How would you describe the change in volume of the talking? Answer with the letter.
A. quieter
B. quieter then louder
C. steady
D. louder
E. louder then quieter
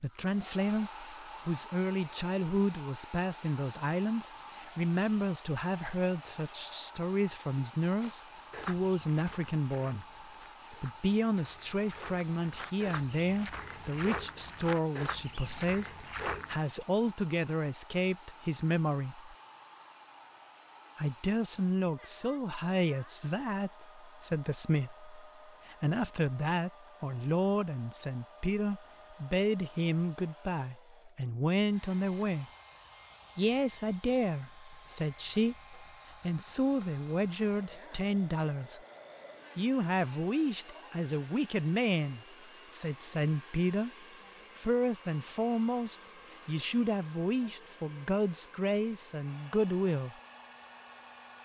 C.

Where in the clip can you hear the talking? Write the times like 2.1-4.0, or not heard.
0.0-10.1, 10.7-19.3, 20.9-32.5, 33.4-38.8, 39.5-43.9, 44.5-50.1.